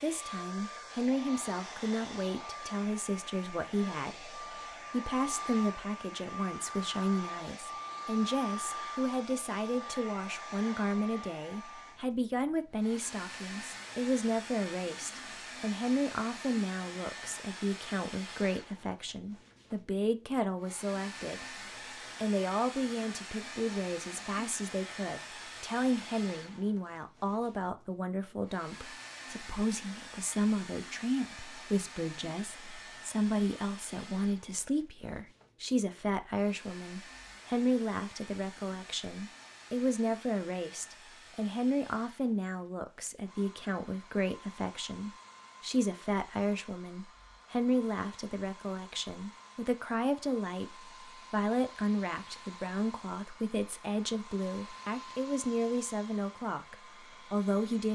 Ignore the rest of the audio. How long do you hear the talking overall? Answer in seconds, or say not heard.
57 s.